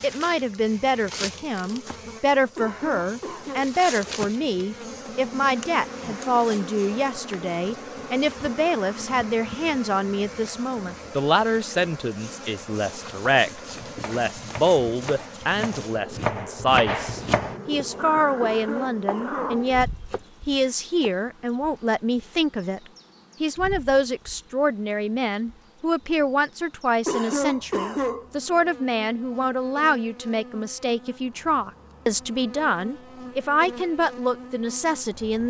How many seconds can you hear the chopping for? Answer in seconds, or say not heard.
7 s.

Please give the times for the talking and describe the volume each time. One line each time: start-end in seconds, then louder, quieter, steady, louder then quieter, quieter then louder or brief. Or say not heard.
0.0-22.8 steady
23.4-35.4 steady.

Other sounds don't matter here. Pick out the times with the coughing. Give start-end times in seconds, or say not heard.
2.5-3.7, 18.4-19.6, 27.1-28.2.